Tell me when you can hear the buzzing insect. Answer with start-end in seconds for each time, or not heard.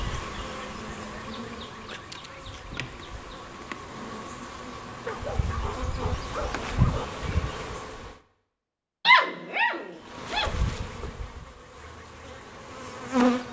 0.0-8.2, 10.1-13.4.